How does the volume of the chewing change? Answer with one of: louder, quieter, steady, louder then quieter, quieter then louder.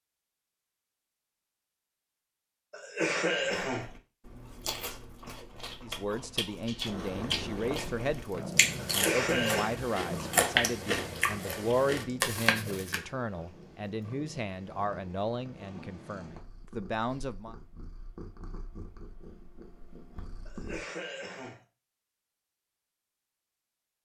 louder.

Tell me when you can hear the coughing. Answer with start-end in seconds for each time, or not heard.
2.7-3.9, 8.8-9.8, 20.4-21.6.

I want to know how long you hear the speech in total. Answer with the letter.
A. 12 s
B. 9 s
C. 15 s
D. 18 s
A.